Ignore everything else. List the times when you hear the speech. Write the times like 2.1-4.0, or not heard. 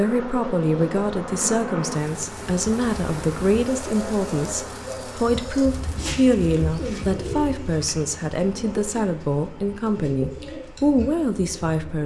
0.0-12.0.